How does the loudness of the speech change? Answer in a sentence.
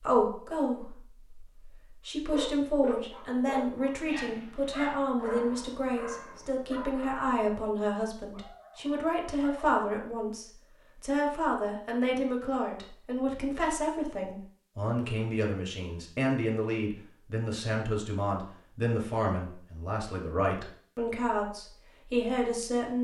The volume of the speech stays about the same.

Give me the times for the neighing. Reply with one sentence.
You can't hear the neighing here.